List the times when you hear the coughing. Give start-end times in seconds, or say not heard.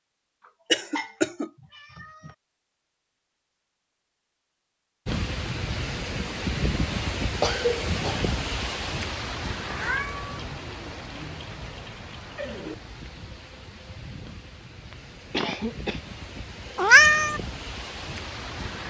0.7-1.5, 7.3-8.2, 14.9-16.1.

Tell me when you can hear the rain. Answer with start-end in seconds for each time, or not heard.
5.0-18.8.